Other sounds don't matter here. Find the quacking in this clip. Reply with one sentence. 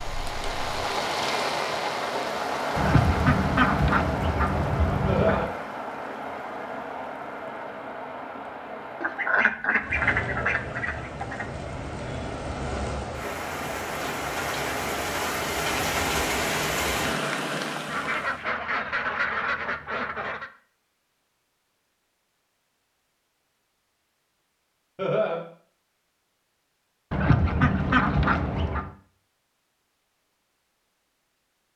The quacking can be heard from 2.8 to 5.5 s, from 9.0 to 11.4 s, from 17.9 to 20.5 s and from 27.1 to 28.9 s.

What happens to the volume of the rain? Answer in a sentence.
The volume of the rain goes down, then up.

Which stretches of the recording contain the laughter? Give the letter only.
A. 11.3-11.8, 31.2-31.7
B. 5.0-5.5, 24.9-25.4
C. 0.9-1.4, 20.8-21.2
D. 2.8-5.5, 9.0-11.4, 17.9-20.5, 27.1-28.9
B.